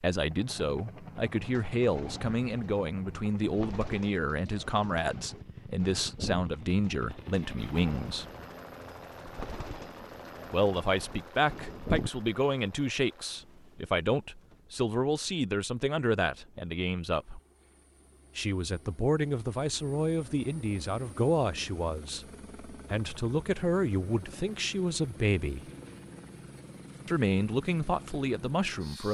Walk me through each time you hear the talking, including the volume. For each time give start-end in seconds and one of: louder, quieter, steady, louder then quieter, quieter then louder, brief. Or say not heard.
0.0-8.2 steady
10.5-17.4 steady
18.4-25.6 steady
27.1-29.0 brief.